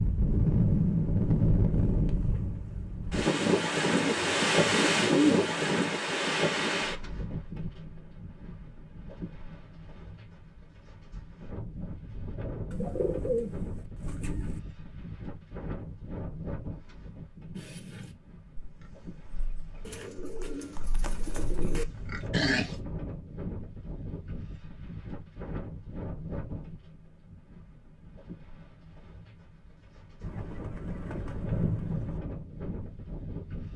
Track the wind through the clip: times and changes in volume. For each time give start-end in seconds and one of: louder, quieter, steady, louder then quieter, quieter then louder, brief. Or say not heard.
0.0-33.7 quieter.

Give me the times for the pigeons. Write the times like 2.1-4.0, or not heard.
3.9-5.8, 12.7-14.6, 19.9-21.9, 30.2-32.2.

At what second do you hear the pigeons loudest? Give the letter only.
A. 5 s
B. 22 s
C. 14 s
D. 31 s
A.